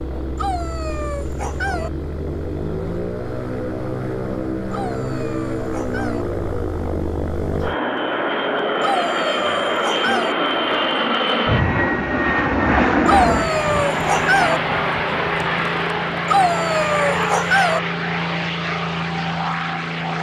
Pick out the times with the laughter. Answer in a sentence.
The laughter can't be heard in this clip.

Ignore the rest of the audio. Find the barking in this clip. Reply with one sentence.
You can hear the barking from 0.3 to 1.9 s, from 4.7 to 6.2 s, from 8.8 to 10.3 s, from 13.1 to 14.6 s and from 16.2 to 17.8 s.